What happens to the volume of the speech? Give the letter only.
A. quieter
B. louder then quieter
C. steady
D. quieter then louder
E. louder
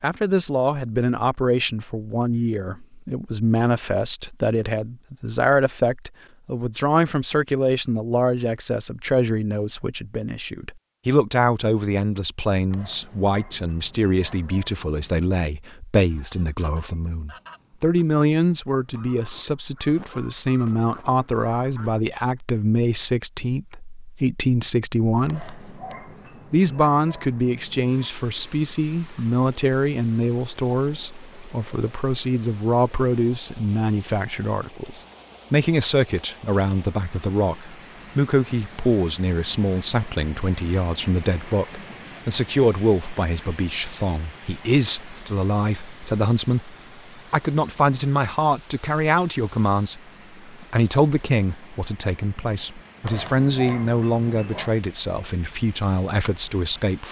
C.